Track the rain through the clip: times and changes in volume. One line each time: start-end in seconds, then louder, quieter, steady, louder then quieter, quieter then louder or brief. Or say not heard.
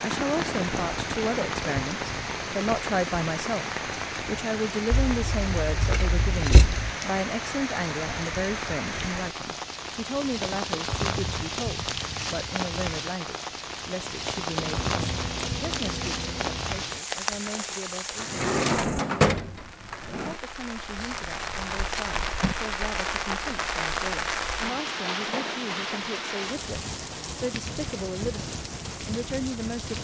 0.0-29.9 steady.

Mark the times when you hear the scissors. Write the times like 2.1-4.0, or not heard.
4.9-6.9, 14.6-16.6, 20.9-22.6.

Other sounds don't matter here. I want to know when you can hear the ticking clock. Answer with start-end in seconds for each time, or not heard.
not heard.